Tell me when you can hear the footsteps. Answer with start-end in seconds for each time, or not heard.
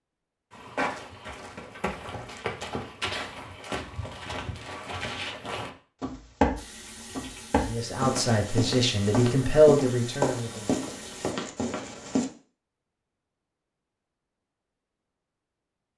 0.5-12.2.